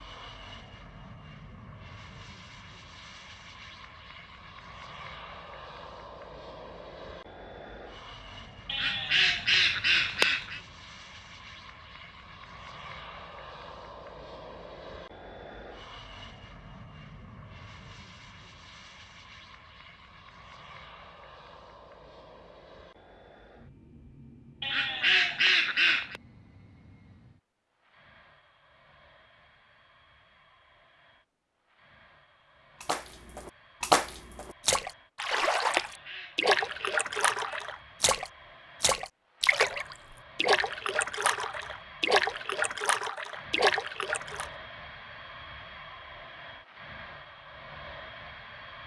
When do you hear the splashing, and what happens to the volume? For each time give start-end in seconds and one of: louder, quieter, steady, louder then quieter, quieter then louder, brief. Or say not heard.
32.8-44.5 steady.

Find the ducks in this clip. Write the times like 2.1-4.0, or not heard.
8.7-10.6, 24.6-26.2, 35.8-37.6.